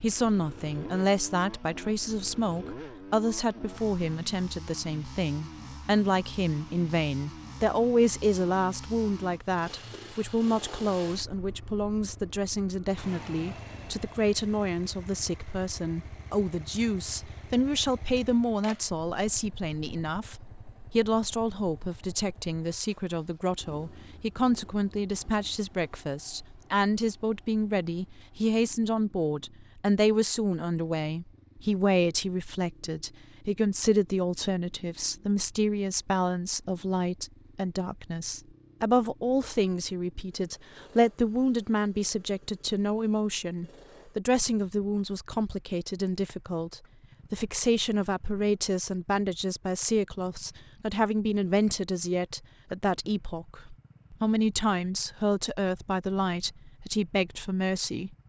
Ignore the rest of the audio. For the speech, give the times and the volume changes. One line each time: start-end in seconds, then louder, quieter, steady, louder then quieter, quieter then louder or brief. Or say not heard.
0.0-58.1 steady.